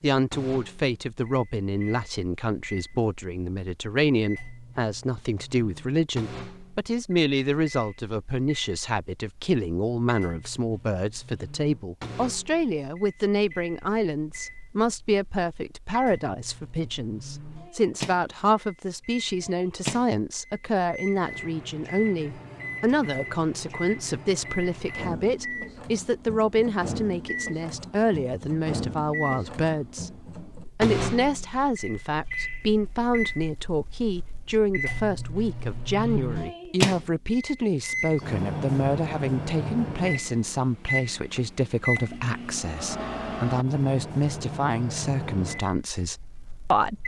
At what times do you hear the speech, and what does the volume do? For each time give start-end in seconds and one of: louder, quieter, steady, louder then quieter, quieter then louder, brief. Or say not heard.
0.0-47.0 steady.